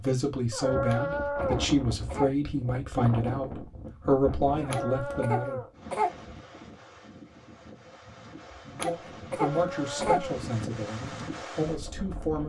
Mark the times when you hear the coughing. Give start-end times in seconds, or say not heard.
0.8-2.6, 4.7-6.3, 8.8-10.4.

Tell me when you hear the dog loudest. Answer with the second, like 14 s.
1 s.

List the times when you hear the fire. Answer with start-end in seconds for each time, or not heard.
not heard.